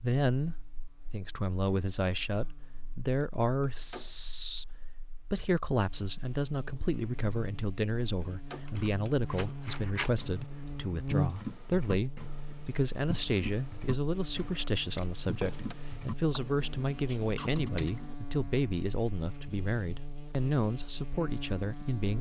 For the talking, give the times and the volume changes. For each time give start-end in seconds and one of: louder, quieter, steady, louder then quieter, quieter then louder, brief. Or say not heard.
0.0-22.1 steady.